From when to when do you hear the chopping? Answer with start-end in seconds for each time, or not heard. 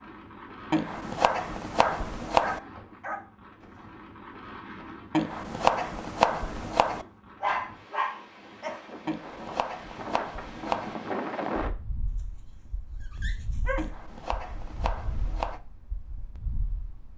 0.7-2.6, 5.1-7.0, 9.1-10.9, 13.8-15.6.